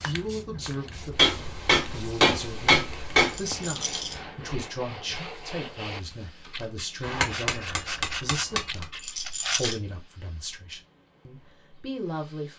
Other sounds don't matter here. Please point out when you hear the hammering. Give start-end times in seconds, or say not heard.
1.1-3.4, 7.0-8.8.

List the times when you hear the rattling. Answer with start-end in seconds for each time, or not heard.
3.2-4.2, 8.9-9.8.